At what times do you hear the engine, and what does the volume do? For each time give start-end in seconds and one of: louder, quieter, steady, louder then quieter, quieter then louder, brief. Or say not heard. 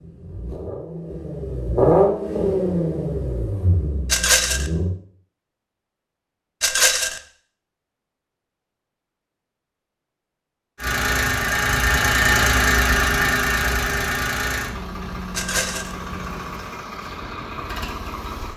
0.0-4.9 louder then quieter
10.8-18.5 quieter.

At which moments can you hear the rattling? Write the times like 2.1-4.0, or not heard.
4.1-4.7, 6.6-7.2, 15.3-15.9.